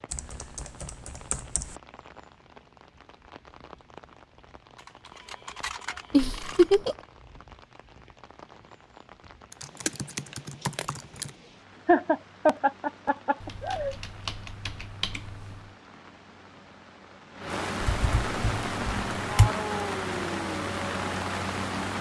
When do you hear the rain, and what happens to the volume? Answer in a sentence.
You can hear the rain from 0.0 to 21.9 s, getting louder.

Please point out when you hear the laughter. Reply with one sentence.
The laughter can be heard from 6.1 to 7.0 s and from 11.8 to 13.9 s.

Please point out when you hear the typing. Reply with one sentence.
The typing can be heard from 0.1 to 1.8 s, from 4.8 to 6.8 s, from 9.5 to 11.3 s, from 13.4 to 15.8 s and from 17.8 to 19.5 s.